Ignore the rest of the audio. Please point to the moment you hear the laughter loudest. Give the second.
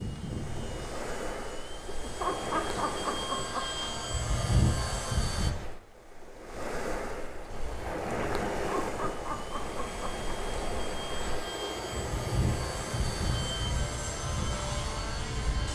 2 s.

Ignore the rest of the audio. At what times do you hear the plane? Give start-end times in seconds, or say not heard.
0.0-5.5, 7.5-15.7.